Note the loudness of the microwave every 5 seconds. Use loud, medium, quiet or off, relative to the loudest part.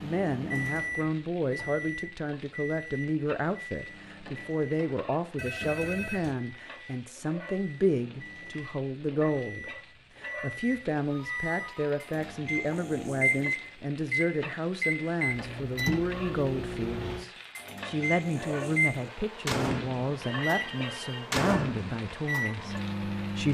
medium, quiet, loud, loud, loud.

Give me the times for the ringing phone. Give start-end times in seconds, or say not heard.
5.3-6.3, 11.1-12.2, 20.2-21.3.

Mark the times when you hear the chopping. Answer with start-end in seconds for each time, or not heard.
not heard.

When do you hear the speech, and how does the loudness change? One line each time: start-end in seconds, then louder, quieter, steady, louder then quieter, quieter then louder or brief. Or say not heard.
0.0-23.4 steady.